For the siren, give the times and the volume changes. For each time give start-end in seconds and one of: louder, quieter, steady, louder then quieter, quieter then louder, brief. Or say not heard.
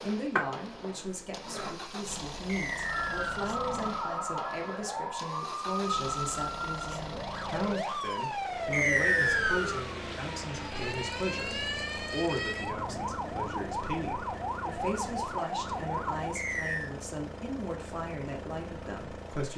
2.9-16.3 steady.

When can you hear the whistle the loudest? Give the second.
9 s.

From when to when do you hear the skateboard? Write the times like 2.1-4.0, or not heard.
0.0-1.8.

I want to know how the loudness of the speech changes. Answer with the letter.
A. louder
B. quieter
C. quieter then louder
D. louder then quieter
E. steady
E.